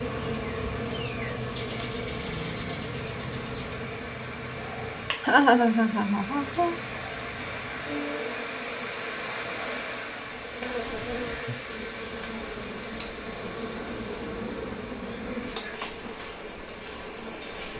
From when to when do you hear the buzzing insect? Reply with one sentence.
You can hear the buzzing insect from 0.0 to 17.7 s.